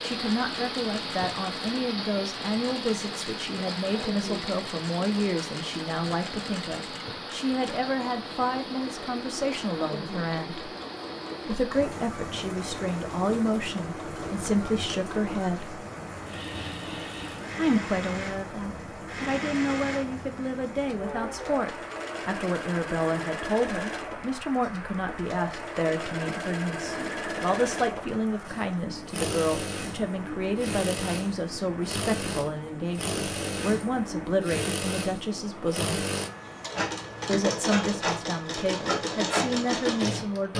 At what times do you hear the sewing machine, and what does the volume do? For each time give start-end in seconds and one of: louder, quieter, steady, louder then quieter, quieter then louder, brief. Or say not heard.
0.0-40.5 louder.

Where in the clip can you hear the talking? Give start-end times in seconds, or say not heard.
0.0-10.7, 11.4-15.8, 17.6-36.0, 37.2-40.5.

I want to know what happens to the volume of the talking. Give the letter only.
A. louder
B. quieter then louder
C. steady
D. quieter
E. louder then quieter
C.